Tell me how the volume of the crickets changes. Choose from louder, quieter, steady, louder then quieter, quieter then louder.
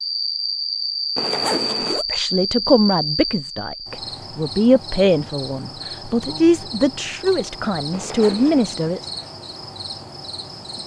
quieter.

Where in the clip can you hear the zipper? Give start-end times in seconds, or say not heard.
1.1-2.0, 7.9-8.7.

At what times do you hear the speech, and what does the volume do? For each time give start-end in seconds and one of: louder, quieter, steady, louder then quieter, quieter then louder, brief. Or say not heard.
1.9-9.0 steady.